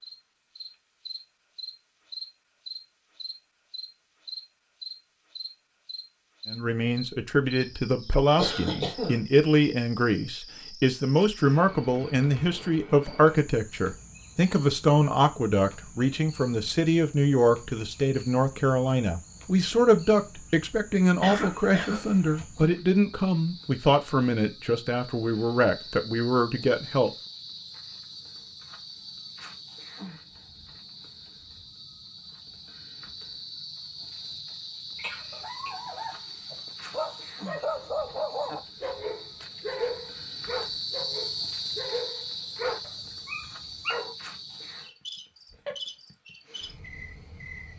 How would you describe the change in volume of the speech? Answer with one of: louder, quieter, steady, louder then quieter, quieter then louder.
steady.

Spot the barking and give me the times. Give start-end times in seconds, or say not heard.
35.3-44.1.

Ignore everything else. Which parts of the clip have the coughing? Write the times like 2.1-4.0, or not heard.
8.3-9.2, 21.2-22.4, 35.0-35.7.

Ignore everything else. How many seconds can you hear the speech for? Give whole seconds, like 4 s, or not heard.
21 s.